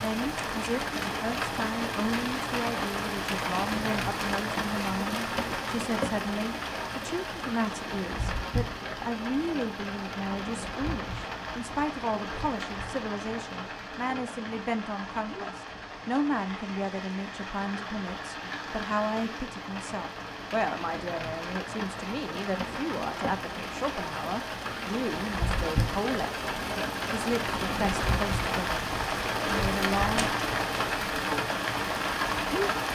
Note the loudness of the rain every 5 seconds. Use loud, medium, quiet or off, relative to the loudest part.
loud, medium, medium, medium, medium, loud, loud.